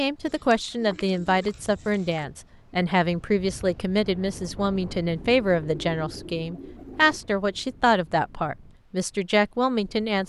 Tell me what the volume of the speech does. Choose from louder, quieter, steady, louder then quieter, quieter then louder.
steady.